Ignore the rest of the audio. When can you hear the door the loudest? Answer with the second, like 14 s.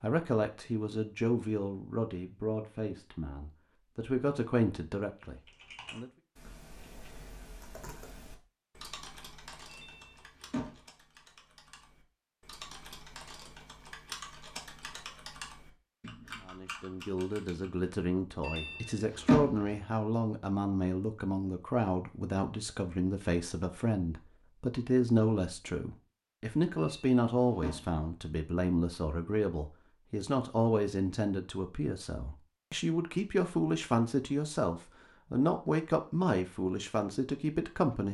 19 s.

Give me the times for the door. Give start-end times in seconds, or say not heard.
9.7-10.8, 18.4-19.8, 26.8-28.0.